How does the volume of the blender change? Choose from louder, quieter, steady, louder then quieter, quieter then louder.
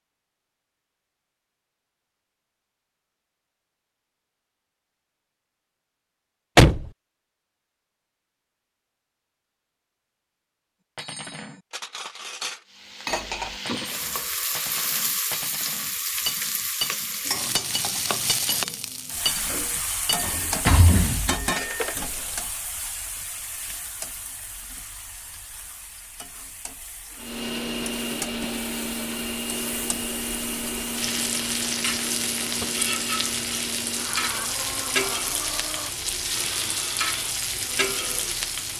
quieter.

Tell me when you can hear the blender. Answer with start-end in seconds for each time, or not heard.
27.1-38.5.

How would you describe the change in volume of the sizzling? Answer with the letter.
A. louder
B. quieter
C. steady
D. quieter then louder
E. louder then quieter
D.